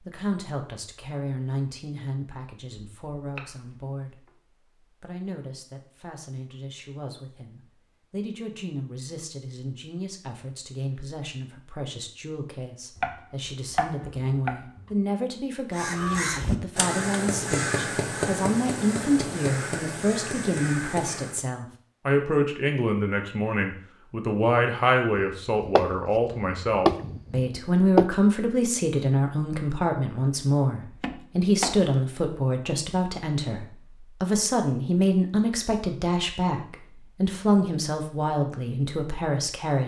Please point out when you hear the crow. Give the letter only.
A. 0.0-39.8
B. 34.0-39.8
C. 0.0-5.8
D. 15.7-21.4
D.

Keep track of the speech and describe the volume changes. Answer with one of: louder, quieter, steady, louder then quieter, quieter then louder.
louder.